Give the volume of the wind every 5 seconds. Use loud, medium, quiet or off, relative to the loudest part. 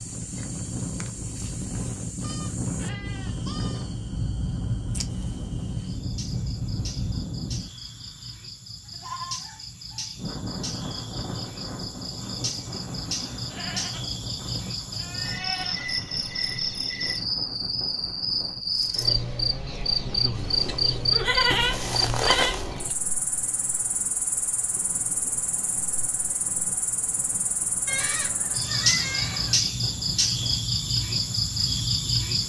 loud, loud, medium, medium, quiet, quiet, quiet.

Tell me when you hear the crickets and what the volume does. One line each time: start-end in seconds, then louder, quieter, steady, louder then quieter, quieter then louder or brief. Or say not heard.
0.0-32.4 louder.